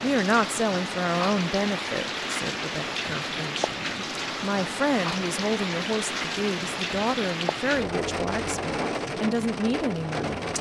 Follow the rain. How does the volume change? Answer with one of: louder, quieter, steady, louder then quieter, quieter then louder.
steady.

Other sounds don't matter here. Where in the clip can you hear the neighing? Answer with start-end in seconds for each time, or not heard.
not heard.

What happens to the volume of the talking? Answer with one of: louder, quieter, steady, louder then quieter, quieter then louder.
quieter then louder.